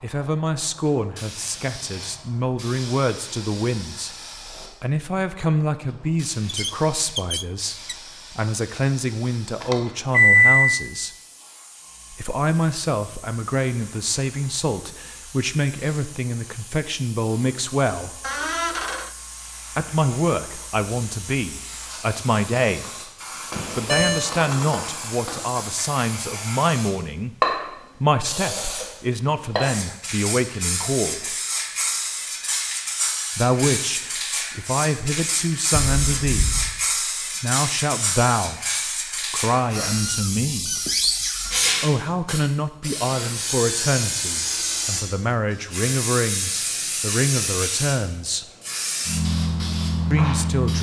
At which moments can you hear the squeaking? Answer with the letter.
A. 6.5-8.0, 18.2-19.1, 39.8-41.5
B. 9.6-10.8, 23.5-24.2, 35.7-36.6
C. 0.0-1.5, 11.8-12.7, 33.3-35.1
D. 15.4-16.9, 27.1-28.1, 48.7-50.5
A.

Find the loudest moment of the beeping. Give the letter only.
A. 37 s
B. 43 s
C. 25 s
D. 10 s
D.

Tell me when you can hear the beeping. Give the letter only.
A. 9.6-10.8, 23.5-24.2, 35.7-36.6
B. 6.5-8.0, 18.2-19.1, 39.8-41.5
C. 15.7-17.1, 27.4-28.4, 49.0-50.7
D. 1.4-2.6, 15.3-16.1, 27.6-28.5
A.